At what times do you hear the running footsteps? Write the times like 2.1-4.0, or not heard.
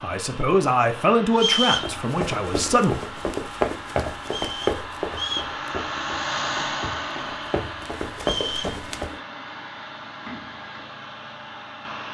1.8-9.2.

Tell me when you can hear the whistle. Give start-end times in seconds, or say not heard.
1.4-1.9, 4.2-5.5, 8.2-8.8.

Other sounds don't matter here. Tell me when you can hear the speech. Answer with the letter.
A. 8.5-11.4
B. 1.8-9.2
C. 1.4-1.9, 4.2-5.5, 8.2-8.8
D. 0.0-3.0
D.